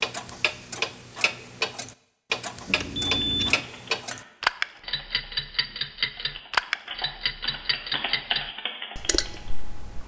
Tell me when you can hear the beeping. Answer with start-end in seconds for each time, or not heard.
2.6-3.6.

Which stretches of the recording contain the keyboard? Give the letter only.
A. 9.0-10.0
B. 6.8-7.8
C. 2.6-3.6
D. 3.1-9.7
D.